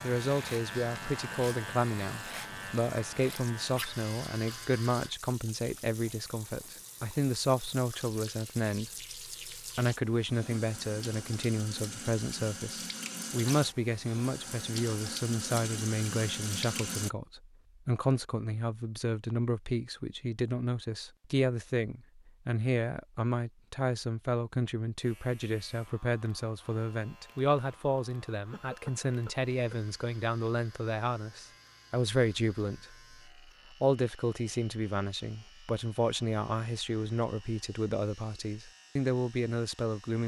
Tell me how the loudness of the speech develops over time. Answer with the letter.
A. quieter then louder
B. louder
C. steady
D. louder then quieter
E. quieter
C.